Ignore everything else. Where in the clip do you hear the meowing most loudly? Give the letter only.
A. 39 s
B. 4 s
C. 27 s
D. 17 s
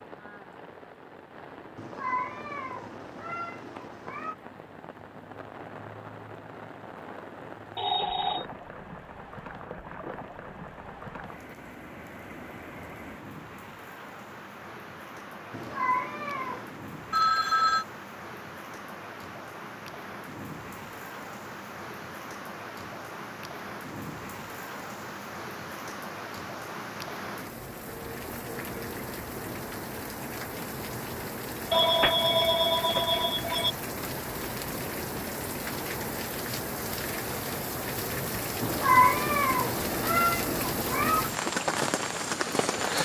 A.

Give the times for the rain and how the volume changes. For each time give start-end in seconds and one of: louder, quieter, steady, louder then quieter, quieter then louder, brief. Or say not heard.
0.0-43.0 louder.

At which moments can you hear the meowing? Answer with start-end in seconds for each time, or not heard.
1.8-4.3, 15.5-16.8, 38.6-41.2.